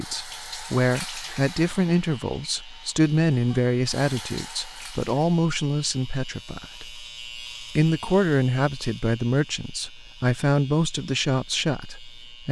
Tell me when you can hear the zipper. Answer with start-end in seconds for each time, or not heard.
not heard.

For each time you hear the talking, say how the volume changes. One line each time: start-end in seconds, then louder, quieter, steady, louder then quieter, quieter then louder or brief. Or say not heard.
0.0-12.4 steady.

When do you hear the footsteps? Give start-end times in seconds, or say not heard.
not heard.